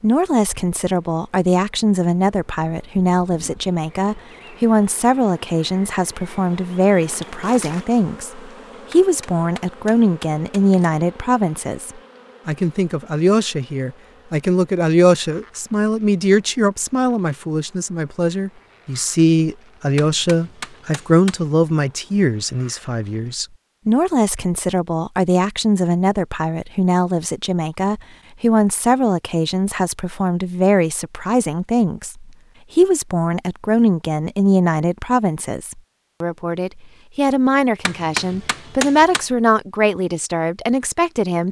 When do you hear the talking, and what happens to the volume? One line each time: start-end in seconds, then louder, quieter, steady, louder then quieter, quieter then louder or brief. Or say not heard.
0.0-41.4 steady.